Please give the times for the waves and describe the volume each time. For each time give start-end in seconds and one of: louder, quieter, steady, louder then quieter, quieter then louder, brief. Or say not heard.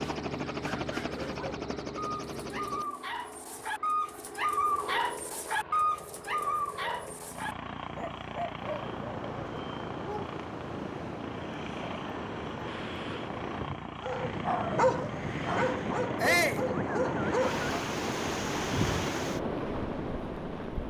8.6-20.8 louder.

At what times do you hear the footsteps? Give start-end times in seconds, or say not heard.
not heard.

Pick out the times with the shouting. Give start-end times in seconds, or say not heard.
16.2-16.6.